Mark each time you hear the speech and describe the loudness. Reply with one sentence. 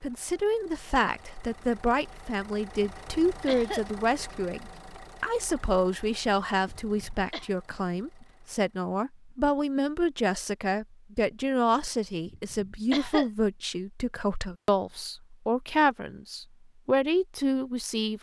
The speech can be heard from 0.0 to 18.1 s, at a steady volume.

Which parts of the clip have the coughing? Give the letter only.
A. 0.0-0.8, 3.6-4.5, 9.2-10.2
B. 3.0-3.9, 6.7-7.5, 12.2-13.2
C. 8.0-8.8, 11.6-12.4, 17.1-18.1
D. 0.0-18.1
B.